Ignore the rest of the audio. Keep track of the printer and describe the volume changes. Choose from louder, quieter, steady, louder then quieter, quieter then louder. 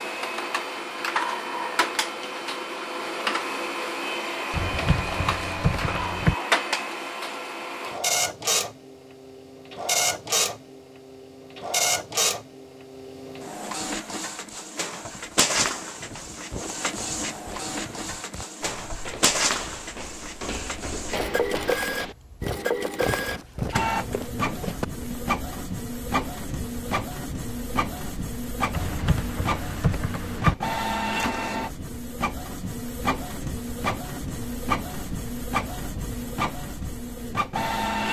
steady.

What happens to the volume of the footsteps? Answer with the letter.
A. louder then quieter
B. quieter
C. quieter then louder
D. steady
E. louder
E.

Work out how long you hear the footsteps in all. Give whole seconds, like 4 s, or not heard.
10 s.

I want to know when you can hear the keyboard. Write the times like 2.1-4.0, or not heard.
4.5-6.3, 28.7-30.6.